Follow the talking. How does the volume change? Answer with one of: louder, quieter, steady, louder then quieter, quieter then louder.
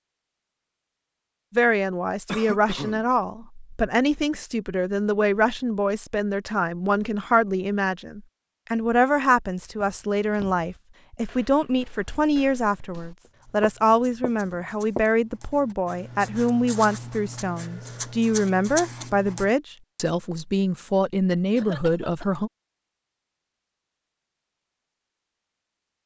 steady.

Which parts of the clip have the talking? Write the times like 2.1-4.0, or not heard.
1.5-22.5.